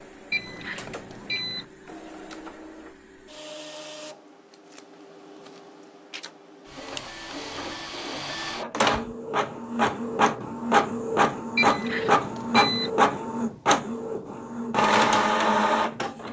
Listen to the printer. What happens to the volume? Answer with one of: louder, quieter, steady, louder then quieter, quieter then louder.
louder.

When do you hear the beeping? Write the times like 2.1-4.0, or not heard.
0.3-1.6, 11.6-12.9.